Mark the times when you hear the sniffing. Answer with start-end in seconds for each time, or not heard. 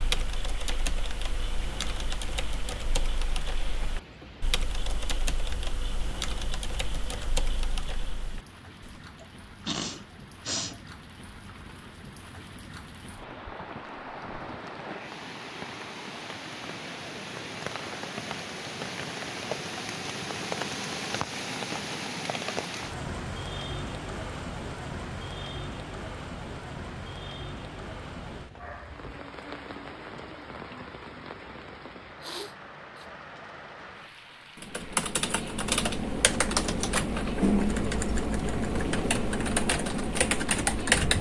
9.2-10.8, 32.2-33.0.